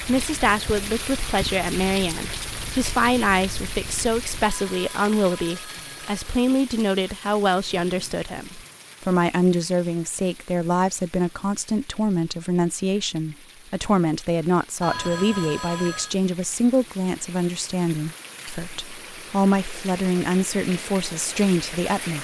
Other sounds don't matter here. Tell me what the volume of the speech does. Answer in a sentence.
The loudness of the speech stays about the same.